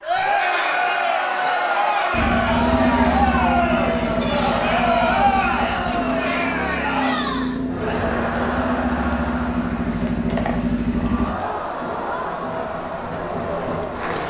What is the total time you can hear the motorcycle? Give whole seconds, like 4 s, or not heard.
9 s.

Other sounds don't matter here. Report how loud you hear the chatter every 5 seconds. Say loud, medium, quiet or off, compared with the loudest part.
loud, loud, medium.